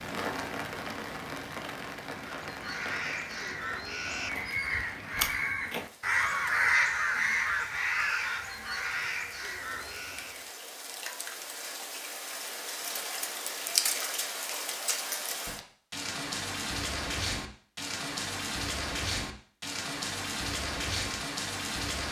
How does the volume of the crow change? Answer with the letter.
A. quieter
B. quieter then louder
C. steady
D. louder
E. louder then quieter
E.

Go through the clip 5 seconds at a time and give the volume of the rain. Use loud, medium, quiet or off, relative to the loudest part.
medium, quiet, loud, loud, loud.